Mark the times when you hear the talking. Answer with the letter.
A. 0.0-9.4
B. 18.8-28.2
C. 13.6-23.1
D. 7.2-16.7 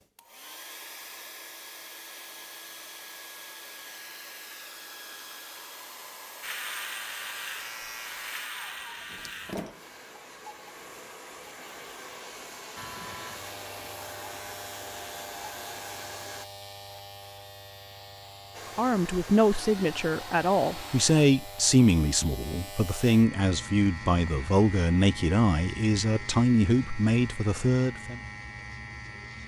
B.